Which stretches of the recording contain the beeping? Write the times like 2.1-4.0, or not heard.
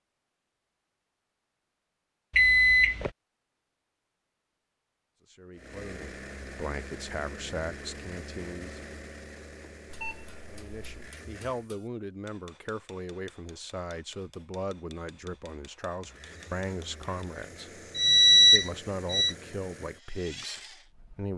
2.4-3.1, 9.9-11.1, 17.9-19.4.